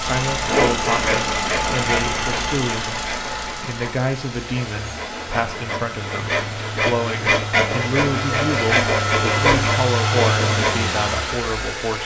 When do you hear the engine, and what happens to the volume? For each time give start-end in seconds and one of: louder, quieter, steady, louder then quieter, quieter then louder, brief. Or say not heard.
0.0-12.0 quieter then louder.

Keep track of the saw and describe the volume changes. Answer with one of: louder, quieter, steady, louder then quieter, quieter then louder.
quieter then louder.